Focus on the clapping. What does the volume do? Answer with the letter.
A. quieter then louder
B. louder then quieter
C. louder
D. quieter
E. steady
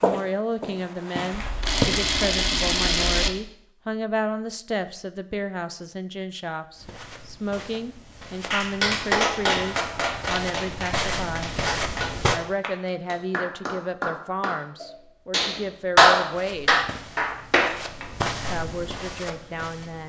A.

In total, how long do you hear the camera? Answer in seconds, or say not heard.
2 s.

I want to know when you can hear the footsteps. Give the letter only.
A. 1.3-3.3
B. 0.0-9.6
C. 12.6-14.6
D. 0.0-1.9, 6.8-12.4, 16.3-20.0
D.